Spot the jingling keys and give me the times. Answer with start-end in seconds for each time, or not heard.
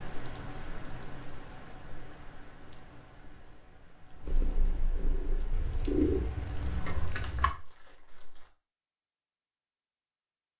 5.5-7.5.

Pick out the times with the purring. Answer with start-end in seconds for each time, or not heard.
4.2-7.0.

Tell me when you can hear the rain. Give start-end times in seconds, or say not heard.
0.0-7.3.